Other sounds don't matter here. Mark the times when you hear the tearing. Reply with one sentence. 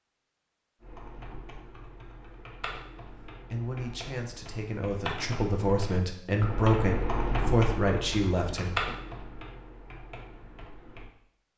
You can't hear the tearing here.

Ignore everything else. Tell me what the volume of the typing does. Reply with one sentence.
The volume of the typing goes up, then down.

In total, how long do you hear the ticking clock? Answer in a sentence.
The ticking clock can't be heard in this clip.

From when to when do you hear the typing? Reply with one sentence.
You can hear the typing from 0.8 to 11.1 s.